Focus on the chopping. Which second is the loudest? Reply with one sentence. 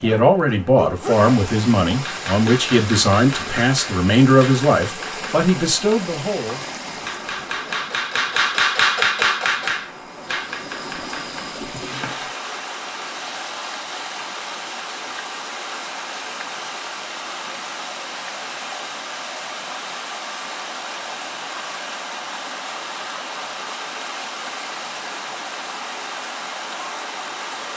The loudest moment of the chopping is at 9 seconds.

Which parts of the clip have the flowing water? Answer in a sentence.
The flowing water can be heard from 0.1 to 27.7 s.